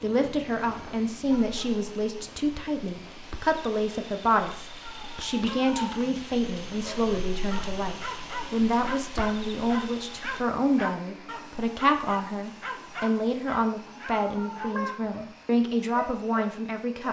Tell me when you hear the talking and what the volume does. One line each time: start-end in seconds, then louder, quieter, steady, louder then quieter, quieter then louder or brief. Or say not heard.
0.0-17.0 steady.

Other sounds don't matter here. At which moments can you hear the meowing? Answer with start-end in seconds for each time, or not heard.
4.8-6.0, 14.1-14.9.